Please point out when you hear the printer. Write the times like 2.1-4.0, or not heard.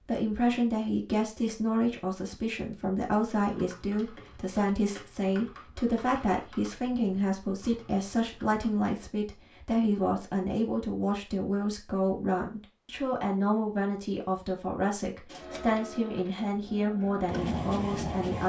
15.2-18.4.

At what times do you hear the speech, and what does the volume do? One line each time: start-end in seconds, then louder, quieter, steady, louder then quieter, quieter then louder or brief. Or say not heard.
0.1-18.4 steady.